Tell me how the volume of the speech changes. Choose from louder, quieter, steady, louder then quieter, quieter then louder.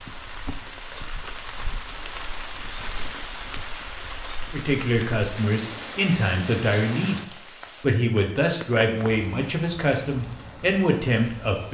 steady.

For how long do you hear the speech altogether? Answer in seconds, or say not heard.
7 s.